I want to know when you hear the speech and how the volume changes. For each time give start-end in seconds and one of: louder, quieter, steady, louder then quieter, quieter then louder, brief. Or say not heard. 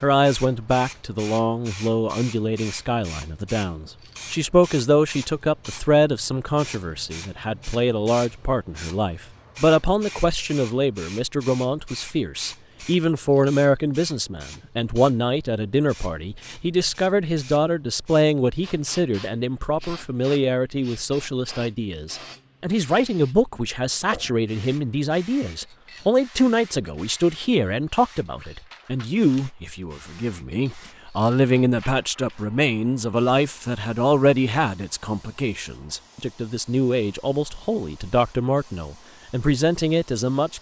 0.0-40.5 steady.